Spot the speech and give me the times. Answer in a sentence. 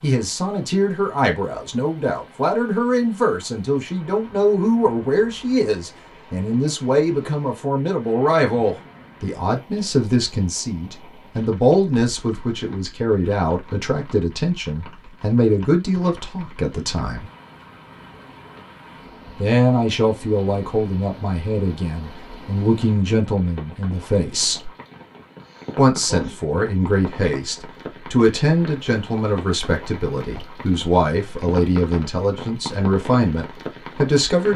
You can hear the speech from 0.0 to 17.2 s, from 19.4 to 24.7 s and from 25.8 to 34.5 s.